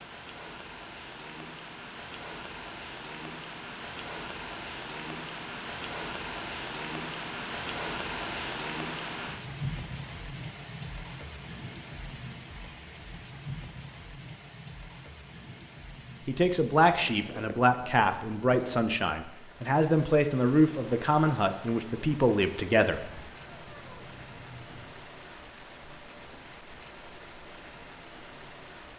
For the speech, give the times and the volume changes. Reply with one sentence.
You can hear the speech from 16.2 to 23.1 s, at a steady volume.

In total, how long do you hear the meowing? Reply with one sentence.
The meowing can be heard for 2 seconds in total.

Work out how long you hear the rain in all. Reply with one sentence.
The rain can be heard for 29 seconds in total.